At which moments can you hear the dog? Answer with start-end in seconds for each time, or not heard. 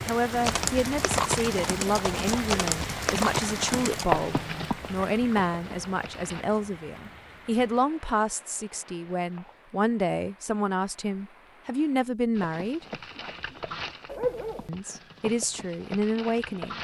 14.1-14.7.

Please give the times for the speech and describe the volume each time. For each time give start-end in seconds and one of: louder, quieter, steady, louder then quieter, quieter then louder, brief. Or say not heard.
0.0-12.8 steady
14.7-16.7 brief.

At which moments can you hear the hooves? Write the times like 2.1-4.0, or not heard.
0.3-6.5, 12.3-16.7.